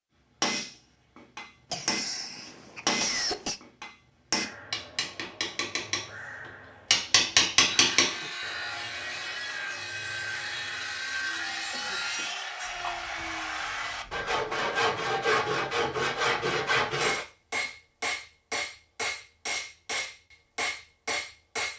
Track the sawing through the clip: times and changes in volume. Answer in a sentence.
You can hear the sawing from 7.6 to 17.2 s, getting louder.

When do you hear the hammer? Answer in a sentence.
The hammer can be heard from 0.4 to 8.2 s and from 17.0 to 21.7 s.